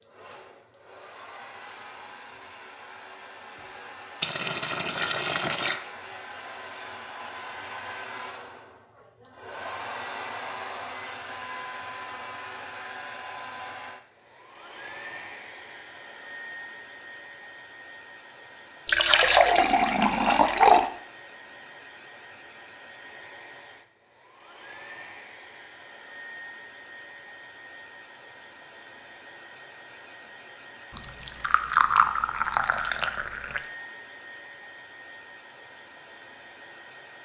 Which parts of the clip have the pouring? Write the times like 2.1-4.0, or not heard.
4.2-5.8, 18.9-20.9, 30.9-33.6.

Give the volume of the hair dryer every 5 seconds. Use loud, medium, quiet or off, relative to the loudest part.
medium, loud, loud, medium, medium, medium, medium, medium.